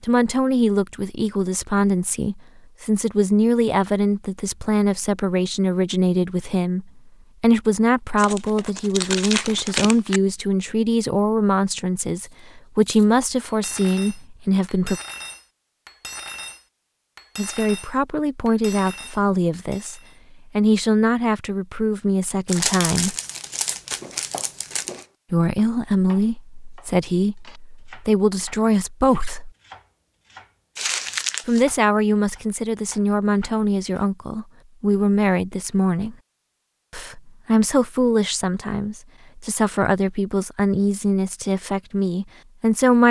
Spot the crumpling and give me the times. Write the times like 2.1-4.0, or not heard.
8.2-10.2, 22.4-25.1, 30.8-31.6.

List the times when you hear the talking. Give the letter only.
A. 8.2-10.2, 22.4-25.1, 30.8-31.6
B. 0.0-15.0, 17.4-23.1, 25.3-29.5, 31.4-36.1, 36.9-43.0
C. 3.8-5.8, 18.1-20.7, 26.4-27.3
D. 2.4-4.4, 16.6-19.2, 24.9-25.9
B.